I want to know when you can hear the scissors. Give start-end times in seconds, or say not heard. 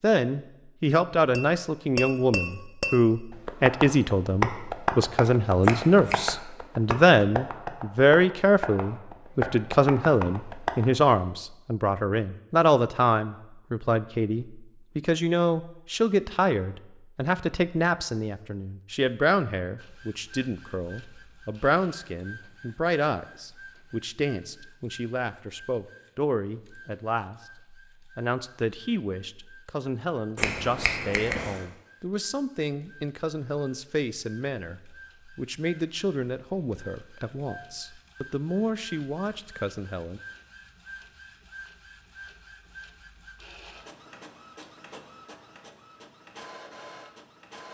5.6-6.2, 30.4-31.6.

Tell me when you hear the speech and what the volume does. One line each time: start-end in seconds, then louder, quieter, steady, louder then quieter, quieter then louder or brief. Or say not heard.
0.0-40.2 quieter.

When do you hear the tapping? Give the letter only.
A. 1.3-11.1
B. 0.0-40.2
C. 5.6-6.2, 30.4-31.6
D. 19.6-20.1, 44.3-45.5
A.